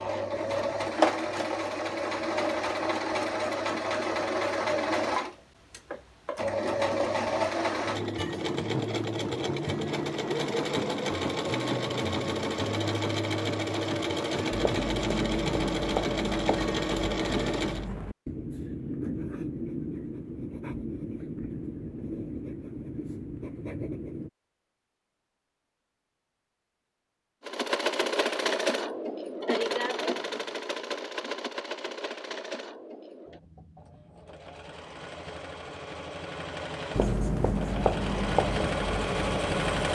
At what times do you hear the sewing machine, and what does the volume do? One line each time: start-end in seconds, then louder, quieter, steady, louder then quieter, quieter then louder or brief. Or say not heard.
0.0-17.9 steady
27.4-39.9 quieter then louder.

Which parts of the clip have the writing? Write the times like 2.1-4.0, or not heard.
14.5-24.3, 36.9-39.9.